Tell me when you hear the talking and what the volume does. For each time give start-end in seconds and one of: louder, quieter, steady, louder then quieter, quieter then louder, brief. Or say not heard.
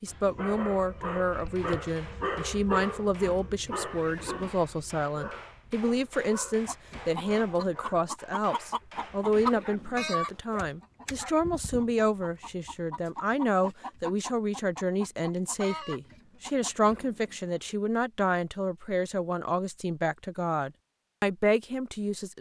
0.0-22.3 steady.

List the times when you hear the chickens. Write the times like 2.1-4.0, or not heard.
6.7-17.1.